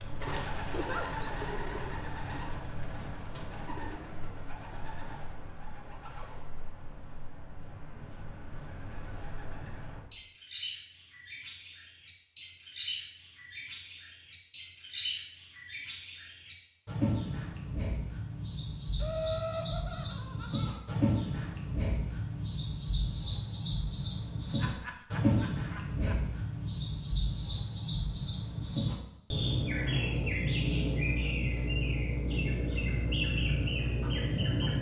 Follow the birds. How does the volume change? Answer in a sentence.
The loudness of the birds goes up.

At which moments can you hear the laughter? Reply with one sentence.
The laughter can be heard from 0.7 to 1.4 s, from 19.0 to 20.9 s and from 24.5 to 26.2 s.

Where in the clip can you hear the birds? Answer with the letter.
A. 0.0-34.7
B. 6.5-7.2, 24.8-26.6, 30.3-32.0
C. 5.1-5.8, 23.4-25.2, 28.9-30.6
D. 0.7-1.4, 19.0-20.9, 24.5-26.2
A.